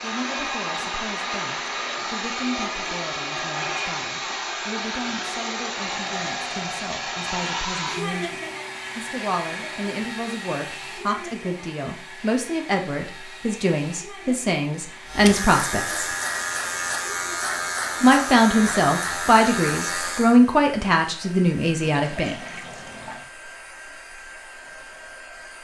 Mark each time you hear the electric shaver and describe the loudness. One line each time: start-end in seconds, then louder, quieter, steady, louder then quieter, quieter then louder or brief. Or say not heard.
15.1-20.4 steady.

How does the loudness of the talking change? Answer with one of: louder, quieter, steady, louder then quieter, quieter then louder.
louder.